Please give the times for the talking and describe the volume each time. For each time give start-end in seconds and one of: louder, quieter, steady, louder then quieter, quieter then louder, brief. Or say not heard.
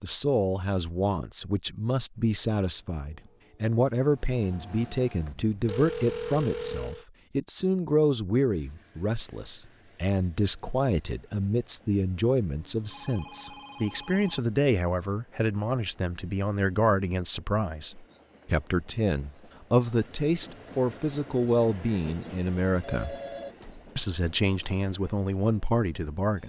0.0-23.1 steady
23.9-26.4 brief.